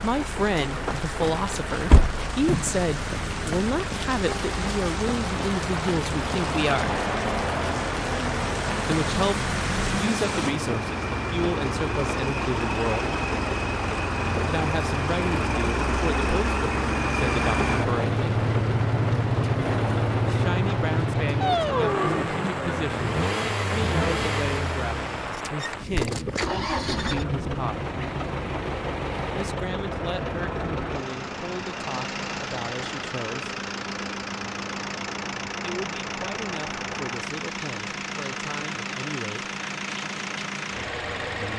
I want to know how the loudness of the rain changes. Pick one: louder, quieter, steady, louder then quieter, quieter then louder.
quieter.